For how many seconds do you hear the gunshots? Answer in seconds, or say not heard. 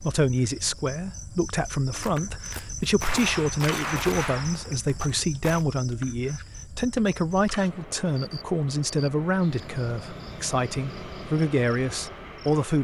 4 s.